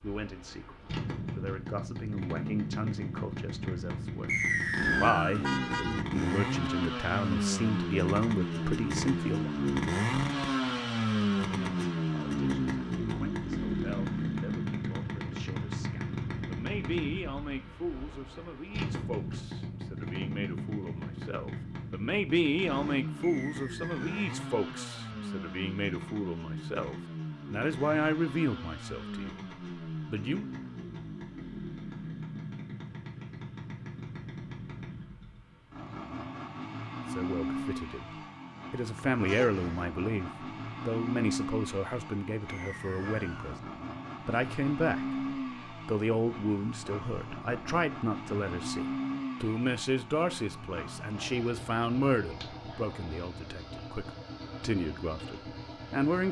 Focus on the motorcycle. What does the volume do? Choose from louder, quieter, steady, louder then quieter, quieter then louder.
quieter.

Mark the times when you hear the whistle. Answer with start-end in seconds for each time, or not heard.
4.2-5.4, 23.2-24.1, 42.5-43.4.